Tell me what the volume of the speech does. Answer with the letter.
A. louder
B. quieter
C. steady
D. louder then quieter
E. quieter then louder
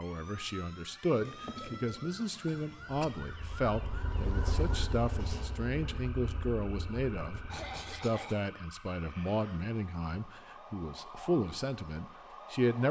C.